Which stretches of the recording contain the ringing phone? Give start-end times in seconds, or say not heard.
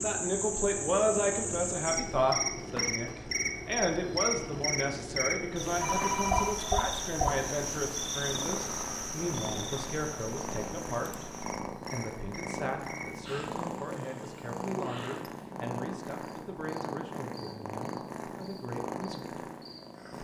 5.8-6.8.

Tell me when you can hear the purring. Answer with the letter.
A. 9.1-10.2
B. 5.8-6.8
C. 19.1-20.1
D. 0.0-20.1
D.